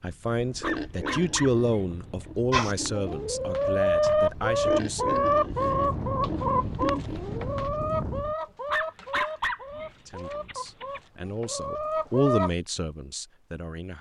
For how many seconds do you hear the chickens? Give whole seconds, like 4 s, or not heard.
10 s.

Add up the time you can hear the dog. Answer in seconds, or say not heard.
4 s.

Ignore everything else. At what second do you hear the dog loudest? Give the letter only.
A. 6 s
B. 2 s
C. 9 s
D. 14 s
C.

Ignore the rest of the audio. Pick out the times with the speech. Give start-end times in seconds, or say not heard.
0.0-5.7, 10.1-13.9.